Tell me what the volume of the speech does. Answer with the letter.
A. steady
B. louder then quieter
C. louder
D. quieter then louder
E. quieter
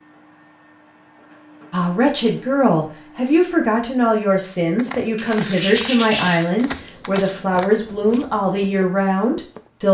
A.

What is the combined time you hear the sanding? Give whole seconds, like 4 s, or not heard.
2 s.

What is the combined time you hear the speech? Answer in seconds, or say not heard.
8 s.